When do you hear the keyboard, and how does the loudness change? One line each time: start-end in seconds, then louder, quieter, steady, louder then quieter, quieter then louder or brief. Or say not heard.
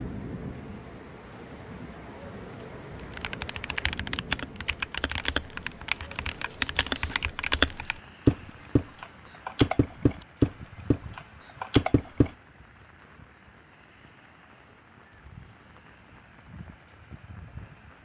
3.0-12.3 louder.